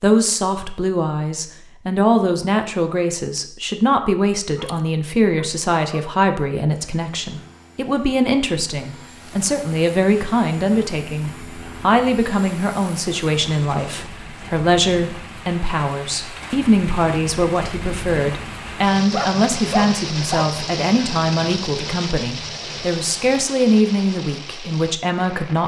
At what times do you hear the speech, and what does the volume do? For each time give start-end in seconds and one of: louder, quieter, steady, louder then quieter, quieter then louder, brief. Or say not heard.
0.0-25.6 steady.